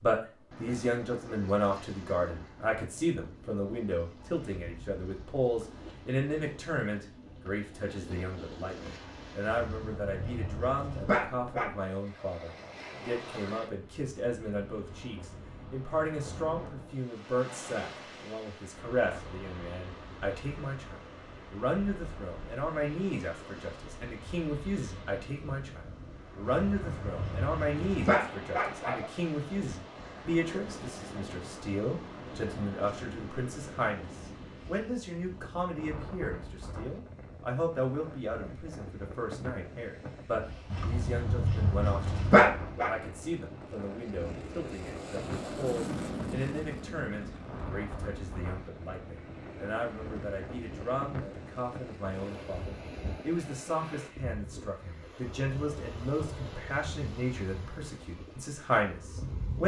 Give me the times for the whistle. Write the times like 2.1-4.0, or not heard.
not heard.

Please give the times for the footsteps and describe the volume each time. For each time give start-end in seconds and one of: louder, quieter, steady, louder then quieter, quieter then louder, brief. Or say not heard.
not heard.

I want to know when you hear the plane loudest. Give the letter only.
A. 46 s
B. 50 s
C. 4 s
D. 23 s
A.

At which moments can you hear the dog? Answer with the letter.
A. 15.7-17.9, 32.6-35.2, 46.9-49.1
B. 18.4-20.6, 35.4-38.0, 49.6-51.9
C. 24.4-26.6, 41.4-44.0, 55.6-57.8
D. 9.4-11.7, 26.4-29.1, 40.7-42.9
D.